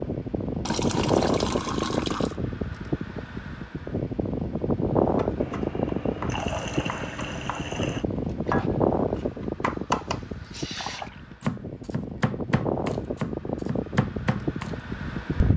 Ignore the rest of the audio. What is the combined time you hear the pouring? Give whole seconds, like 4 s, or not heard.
5 s.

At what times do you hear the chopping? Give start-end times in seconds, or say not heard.
5.2-14.8.